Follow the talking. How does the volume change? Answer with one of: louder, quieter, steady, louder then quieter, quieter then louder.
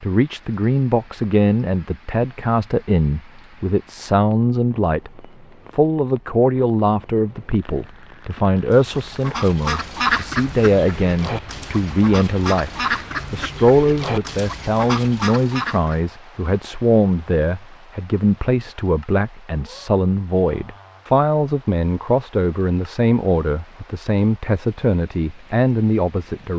steady.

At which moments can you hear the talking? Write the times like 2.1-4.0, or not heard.
0.0-26.5.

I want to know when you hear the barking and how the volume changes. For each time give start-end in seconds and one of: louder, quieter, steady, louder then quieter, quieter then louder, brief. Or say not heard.
not heard.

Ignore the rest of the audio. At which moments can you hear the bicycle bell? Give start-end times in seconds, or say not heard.
not heard.